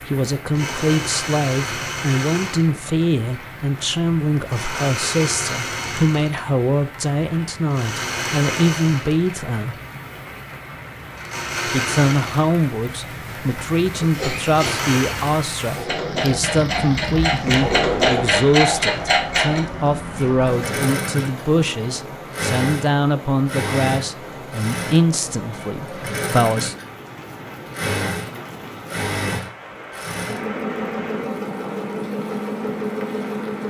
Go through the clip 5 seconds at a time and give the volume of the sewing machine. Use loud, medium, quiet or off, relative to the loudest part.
medium, medium, medium, loud, medium, medium, medium.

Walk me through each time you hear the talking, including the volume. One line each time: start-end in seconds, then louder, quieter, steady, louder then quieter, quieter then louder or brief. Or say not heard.
0.1-9.8 steady
11.7-26.8 steady.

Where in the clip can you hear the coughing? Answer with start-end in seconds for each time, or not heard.
14.0-14.9.